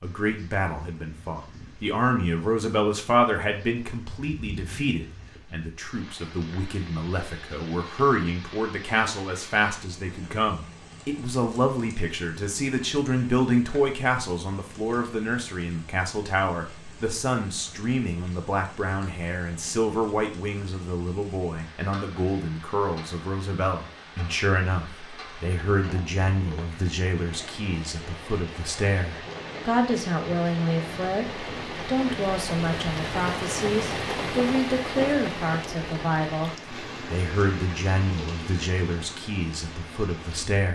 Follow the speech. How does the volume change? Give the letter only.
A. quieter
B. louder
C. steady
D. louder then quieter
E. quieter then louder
C.